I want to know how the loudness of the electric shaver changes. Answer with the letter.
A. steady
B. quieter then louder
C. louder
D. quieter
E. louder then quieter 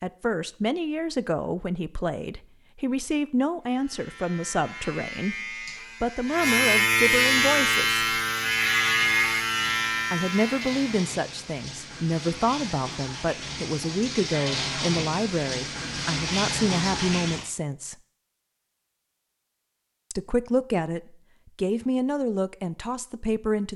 E.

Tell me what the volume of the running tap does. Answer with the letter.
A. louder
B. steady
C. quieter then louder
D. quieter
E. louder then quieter
A.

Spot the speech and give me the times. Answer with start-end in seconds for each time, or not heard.
0.0-8.0, 10.1-17.9, 20.1-23.7.